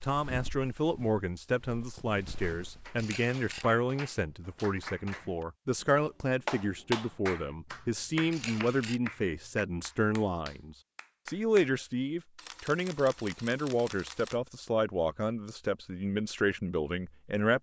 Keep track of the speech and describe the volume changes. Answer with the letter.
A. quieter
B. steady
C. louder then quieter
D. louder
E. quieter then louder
B.